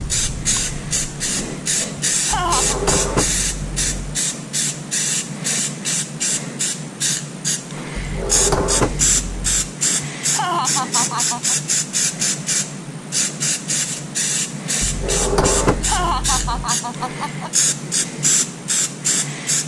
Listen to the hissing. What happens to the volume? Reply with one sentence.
The volume of the hissing stays about the same.